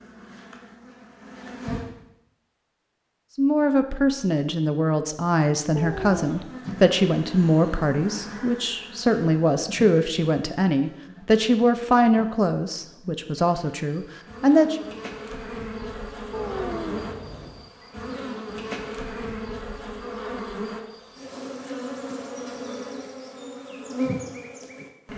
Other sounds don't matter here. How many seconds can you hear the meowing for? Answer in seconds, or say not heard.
2 s.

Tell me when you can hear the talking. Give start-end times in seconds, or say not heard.
3.4-14.8.